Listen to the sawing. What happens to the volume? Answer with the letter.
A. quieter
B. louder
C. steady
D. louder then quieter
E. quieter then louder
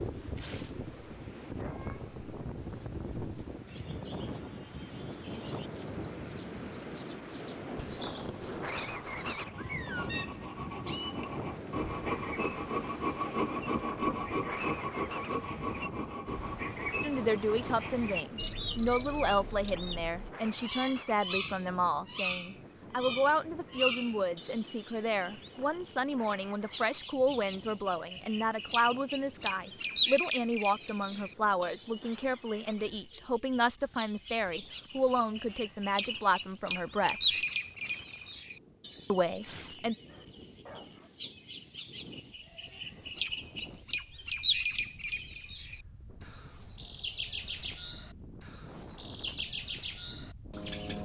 D.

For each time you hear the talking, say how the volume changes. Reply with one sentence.
The talking can be heard from 17.0 to 37.3 s, at a steady volume; and briefly from 39.1 to 40.0 s.